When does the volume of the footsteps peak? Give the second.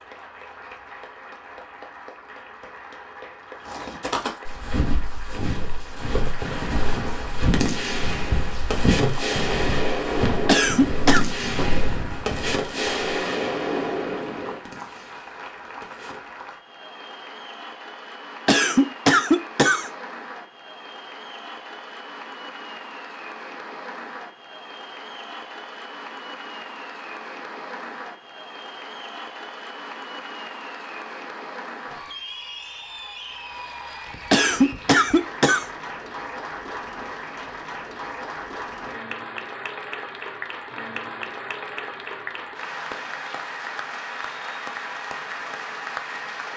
9 s.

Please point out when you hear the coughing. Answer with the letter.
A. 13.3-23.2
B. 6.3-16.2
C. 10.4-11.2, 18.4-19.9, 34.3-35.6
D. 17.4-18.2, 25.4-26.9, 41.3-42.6
C.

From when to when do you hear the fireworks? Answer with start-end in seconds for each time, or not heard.
6.3-16.2.